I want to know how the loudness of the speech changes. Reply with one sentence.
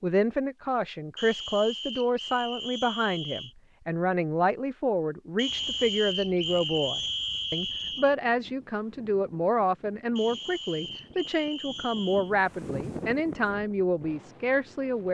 The loudness of the speech stays about the same.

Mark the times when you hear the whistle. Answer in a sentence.
The whistle can be heard from 1.1 to 3.5 s, from 5.3 to 8.2 s and from 10.2 to 12.3 s.